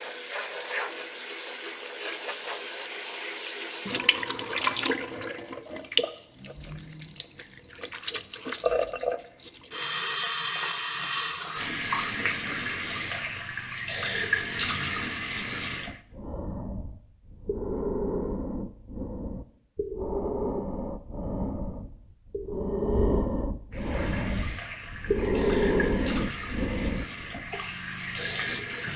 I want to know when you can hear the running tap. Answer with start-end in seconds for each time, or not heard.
0.0-16.0, 23.7-28.9.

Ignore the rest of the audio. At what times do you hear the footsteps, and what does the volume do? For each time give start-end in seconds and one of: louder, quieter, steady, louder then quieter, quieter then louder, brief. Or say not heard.
not heard.